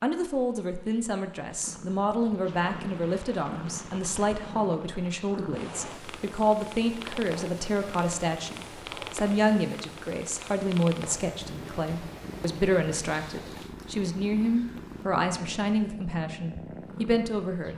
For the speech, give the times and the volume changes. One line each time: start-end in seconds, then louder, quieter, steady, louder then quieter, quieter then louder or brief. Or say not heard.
0.0-17.7 steady.